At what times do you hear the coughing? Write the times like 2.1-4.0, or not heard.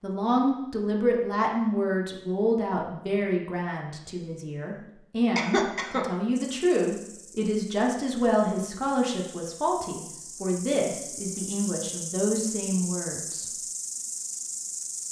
5.3-6.0.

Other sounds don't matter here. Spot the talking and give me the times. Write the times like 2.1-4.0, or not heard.
0.0-13.4.